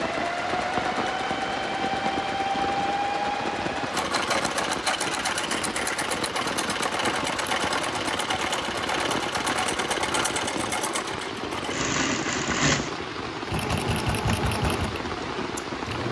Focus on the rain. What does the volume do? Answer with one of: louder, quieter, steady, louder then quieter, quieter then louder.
steady.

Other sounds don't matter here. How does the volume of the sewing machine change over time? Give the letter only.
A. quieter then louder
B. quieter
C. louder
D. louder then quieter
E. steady
E.